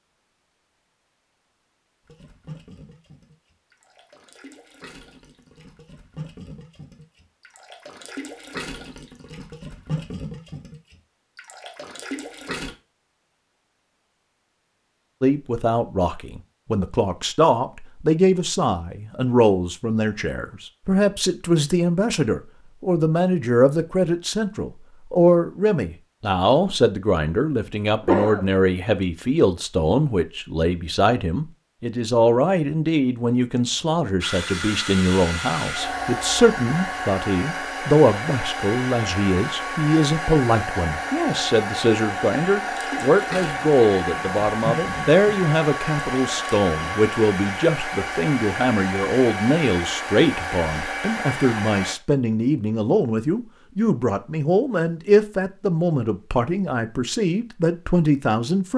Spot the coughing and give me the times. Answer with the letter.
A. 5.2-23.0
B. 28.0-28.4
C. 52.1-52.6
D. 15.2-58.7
B.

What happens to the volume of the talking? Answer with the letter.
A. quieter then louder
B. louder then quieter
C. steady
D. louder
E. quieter
C.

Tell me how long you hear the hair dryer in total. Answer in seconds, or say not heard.
18 s.